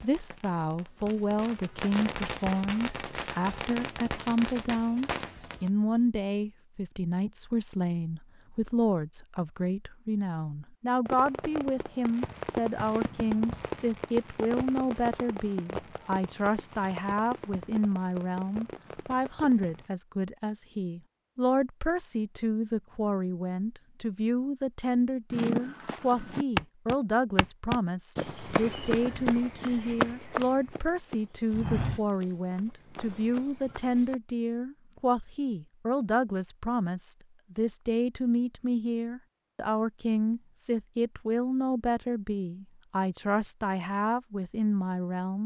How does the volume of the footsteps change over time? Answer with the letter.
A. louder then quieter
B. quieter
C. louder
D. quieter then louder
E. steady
B.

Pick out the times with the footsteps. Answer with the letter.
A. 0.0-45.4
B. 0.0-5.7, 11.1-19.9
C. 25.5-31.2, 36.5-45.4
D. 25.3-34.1
D.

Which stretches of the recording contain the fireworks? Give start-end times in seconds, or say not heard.
0.0-5.7, 11.1-19.9.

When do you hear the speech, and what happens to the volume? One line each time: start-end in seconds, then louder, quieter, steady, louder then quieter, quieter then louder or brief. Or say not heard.
0.0-45.4 steady.